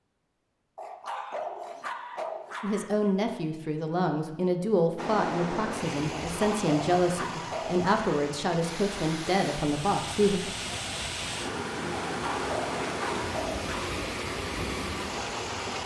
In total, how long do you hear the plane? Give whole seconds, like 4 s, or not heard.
not heard.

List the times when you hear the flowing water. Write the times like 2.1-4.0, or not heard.
5.0-15.8.